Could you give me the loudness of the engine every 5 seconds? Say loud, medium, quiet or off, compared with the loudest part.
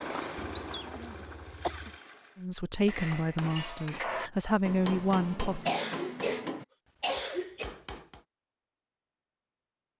loud, off.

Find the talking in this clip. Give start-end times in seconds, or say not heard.
2.4-5.7.